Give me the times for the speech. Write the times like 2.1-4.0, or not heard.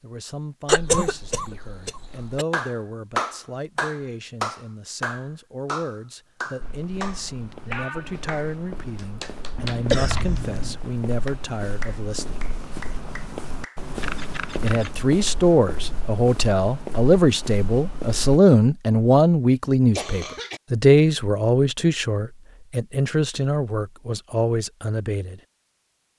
0.0-12.4, 14.6-25.4.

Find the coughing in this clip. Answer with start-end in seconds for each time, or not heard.
0.7-2.5, 9.9-10.5, 19.9-20.6.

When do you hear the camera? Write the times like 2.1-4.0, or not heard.
9.6-10.8, 14.0-14.9.